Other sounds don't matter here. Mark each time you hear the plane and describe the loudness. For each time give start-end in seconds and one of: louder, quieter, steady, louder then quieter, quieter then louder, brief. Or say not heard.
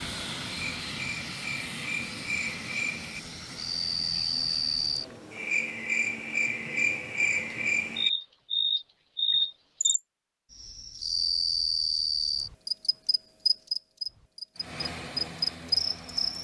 0.0-5.2 quieter
14.6-16.3 brief.